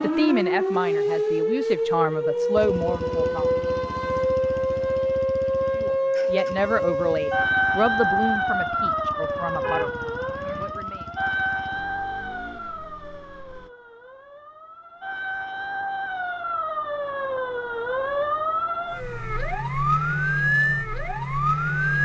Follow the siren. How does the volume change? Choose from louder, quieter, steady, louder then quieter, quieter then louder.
quieter then louder.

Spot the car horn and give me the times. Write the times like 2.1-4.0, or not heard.
9.6-10.8.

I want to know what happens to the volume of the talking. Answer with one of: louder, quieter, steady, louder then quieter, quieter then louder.
quieter.